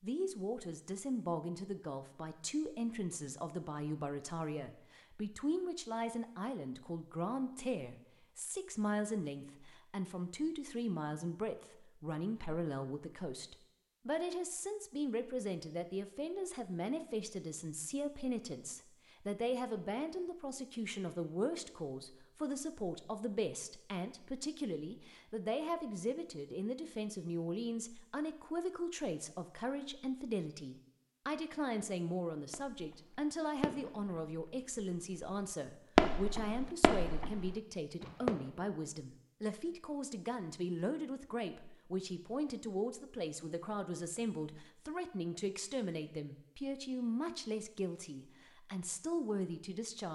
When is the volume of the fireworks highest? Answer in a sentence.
The volume of the fireworks peaks at 36 seconds.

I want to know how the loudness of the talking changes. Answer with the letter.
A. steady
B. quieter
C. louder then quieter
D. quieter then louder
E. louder
A.